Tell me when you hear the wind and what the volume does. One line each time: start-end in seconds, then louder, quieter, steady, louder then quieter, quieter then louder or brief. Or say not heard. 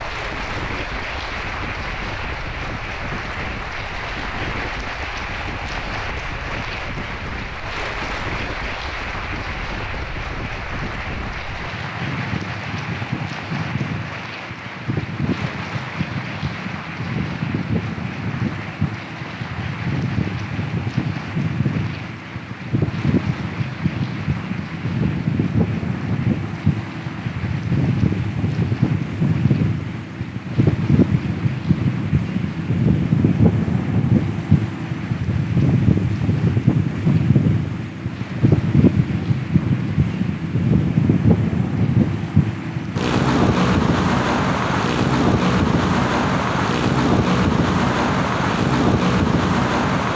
0.0-50.1 louder.